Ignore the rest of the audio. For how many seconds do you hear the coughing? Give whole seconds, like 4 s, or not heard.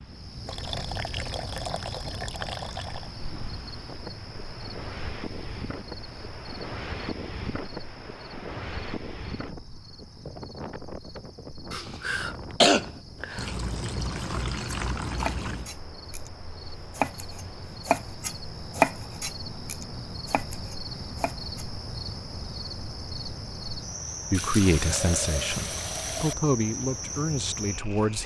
2 s.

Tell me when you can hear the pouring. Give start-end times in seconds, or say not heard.
0.5-3.1, 13.3-15.7, 24.3-26.4.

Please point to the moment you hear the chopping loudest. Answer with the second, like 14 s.
19 s.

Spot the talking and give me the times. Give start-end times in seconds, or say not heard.
24.3-28.2.